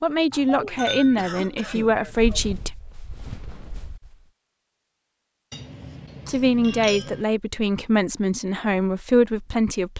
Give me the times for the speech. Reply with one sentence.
You can hear the speech from 0.0 to 2.8 s and from 6.2 to 9.9 s.